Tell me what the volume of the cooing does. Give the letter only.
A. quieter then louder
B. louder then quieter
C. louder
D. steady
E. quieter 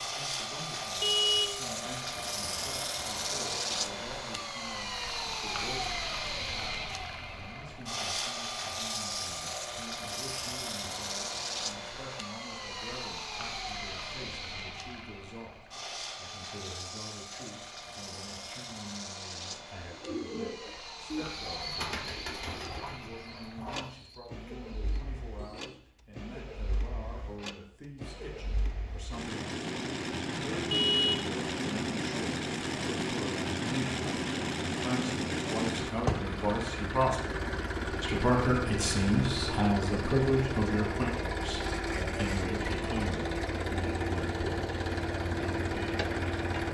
E.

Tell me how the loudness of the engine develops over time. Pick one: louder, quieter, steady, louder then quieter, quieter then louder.
quieter then louder.